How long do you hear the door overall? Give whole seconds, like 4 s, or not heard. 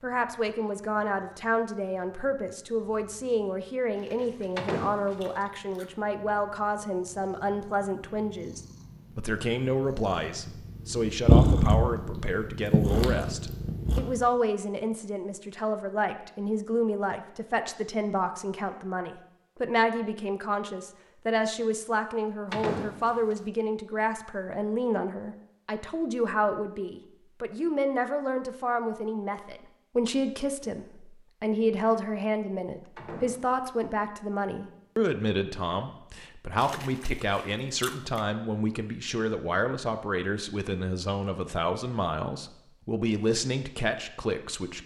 3 s.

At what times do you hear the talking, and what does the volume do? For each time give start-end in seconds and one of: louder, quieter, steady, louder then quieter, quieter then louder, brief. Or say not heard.
0.0-44.8 steady.